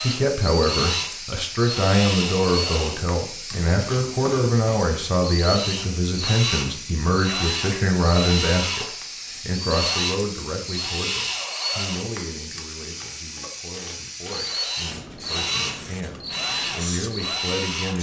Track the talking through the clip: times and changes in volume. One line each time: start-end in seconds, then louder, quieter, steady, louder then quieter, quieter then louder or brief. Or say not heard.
0.0-17.9 quieter.